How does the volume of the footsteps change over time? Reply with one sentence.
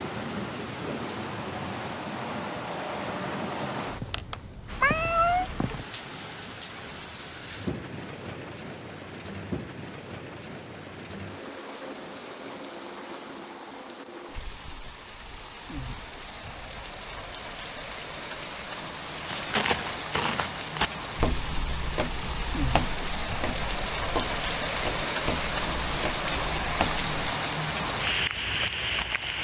The volume of the footsteps goes down.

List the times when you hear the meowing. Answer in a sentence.
The meowing can be heard from 4.8 to 5.5 s.